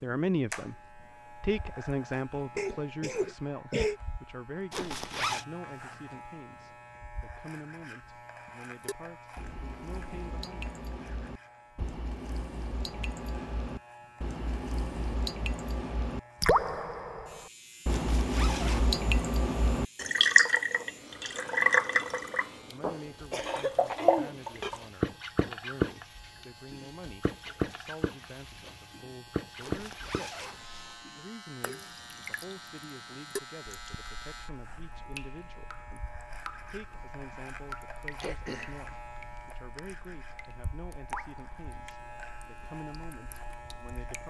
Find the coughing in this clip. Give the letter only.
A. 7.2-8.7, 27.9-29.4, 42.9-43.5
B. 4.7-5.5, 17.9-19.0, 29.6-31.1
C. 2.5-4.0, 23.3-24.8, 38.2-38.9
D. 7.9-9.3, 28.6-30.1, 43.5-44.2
C.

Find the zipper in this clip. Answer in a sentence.
You can hear the zipper from 4.7 to 5.5 s, from 17.9 to 19.0 s and from 29.6 to 31.1 s.